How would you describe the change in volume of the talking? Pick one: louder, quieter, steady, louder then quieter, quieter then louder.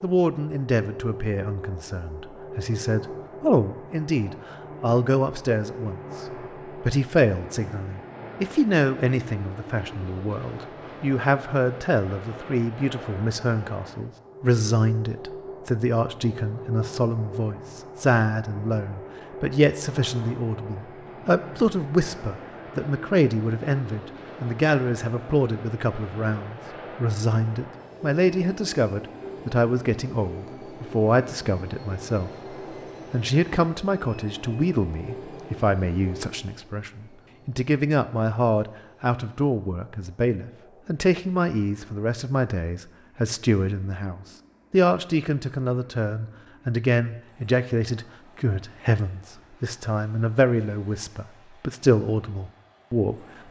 steady.